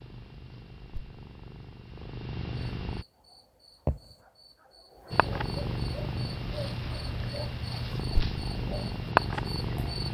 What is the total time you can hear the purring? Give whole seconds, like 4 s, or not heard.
8 s.